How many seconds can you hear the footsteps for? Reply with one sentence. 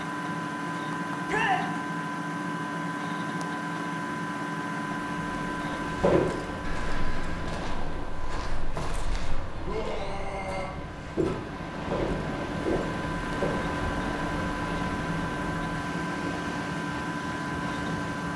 The footsteps can be heard for 8 seconds in total.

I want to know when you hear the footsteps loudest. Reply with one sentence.
The loudest moment of the footsteps is at 6 seconds.